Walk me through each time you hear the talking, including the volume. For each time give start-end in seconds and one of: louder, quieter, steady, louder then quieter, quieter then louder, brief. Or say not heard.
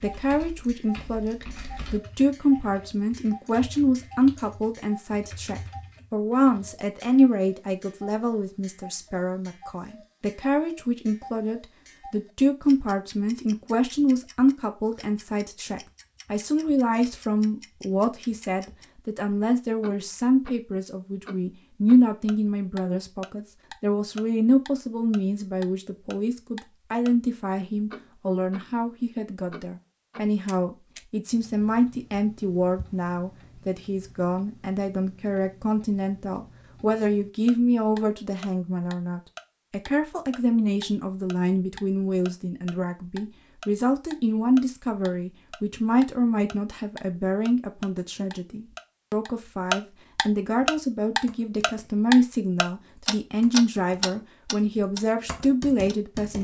0.0-56.4 steady.